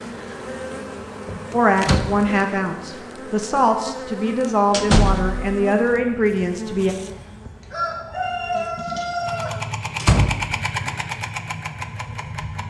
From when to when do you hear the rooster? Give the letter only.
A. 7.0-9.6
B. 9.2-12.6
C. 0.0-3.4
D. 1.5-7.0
A.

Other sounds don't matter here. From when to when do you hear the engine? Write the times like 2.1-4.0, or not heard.
9.2-12.6.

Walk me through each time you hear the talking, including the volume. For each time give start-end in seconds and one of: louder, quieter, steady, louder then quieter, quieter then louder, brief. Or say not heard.
1.5-7.0 steady.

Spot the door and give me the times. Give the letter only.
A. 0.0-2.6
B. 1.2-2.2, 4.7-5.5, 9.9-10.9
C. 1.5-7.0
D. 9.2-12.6
B.